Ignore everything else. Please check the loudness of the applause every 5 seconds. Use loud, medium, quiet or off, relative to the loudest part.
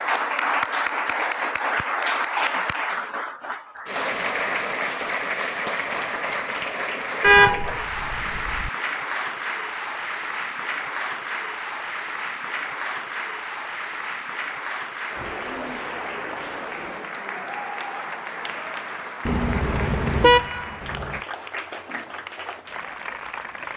loud, loud, medium, medium, medium.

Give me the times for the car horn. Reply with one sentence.
You can hear the car horn from 7.2 to 8.7 s and from 19.2 to 21.2 s.